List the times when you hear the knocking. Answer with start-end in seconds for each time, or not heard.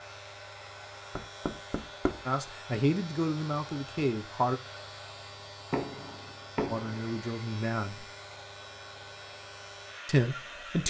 1.1-2.2, 5.7-7.2.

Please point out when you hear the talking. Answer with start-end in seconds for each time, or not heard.
2.2-4.6, 6.7-8.1, 10.1-10.8.